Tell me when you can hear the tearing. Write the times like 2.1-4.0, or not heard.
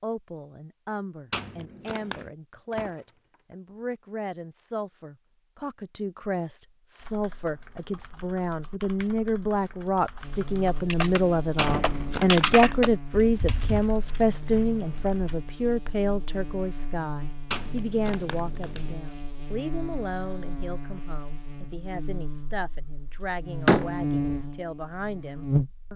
1.3-2.3, 11.6-12.8, 17.5-18.9.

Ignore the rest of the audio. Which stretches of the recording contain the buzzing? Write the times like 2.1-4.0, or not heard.
10.2-25.9.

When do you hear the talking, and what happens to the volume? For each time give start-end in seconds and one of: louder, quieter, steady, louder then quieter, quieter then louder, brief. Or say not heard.
0.0-25.9 louder then quieter.